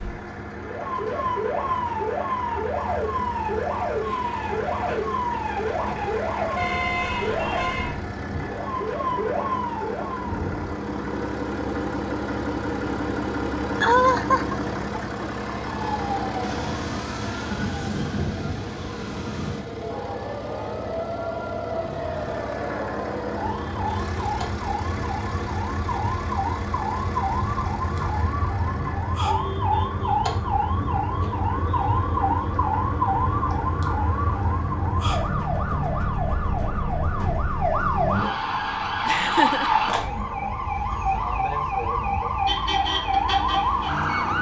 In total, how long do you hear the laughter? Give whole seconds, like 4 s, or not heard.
2 s.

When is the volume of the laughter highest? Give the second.
14 s.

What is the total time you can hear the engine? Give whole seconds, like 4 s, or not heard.
44 s.